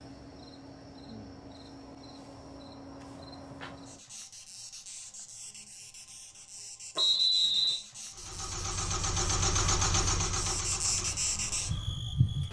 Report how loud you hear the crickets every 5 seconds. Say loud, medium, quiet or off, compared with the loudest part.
quiet, quiet, loud.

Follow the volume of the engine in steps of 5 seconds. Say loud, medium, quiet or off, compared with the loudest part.
off, loud, medium.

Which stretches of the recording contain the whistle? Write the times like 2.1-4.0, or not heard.
7.0-7.8.